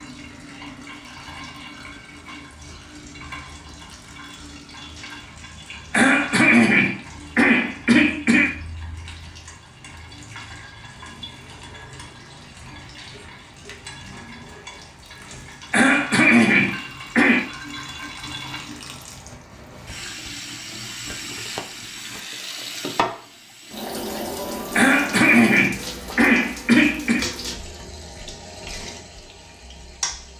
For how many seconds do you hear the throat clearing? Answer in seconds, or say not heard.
7 s.